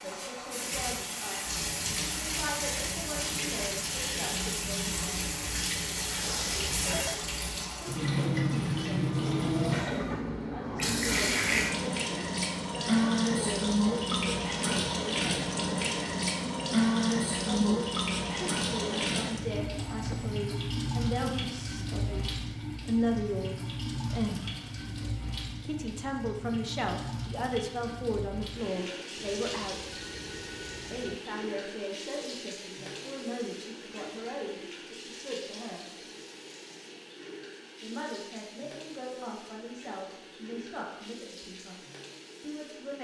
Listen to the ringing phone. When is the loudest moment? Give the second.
6 s.